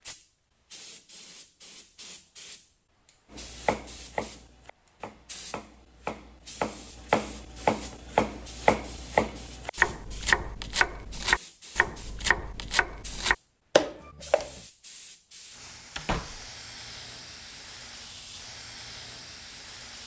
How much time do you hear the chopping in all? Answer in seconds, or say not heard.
11 s.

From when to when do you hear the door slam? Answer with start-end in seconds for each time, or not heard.
15.9-16.5.